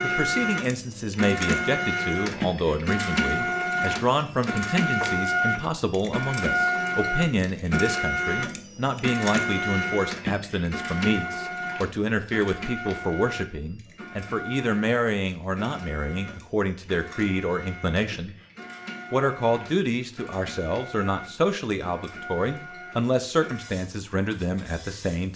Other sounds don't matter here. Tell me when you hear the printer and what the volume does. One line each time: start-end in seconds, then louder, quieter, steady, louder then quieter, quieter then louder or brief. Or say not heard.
0.0-25.3 quieter.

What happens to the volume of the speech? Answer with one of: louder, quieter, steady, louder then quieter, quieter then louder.
steady.